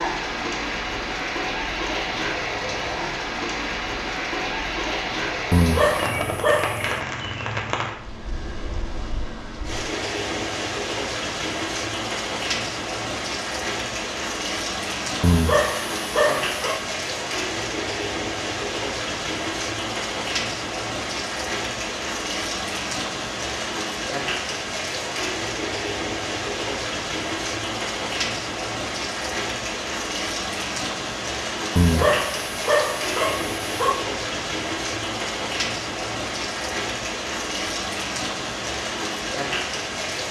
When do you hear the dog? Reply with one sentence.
You can hear the dog from 5.5 to 6.8 s, from 15.2 to 16.9 s and from 31.8 to 34.0 s.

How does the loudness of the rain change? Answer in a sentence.
The loudness of the rain stays about the same.